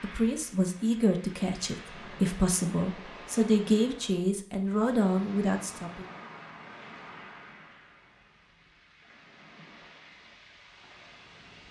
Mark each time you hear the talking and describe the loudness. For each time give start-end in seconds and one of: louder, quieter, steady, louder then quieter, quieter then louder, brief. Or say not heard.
0.0-6.1 steady.